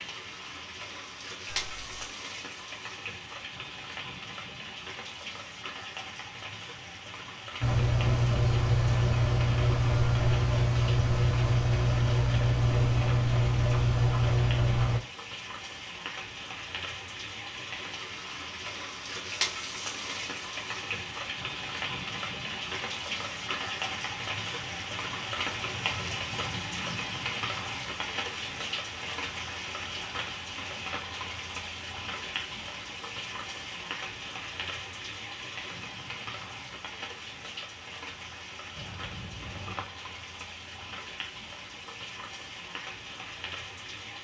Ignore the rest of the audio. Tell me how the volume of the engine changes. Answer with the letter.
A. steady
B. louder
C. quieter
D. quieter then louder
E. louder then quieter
A.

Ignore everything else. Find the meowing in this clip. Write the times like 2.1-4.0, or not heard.
1.4-2.1, 38.8-39.9.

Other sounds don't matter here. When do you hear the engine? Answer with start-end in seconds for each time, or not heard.
7.6-15.0.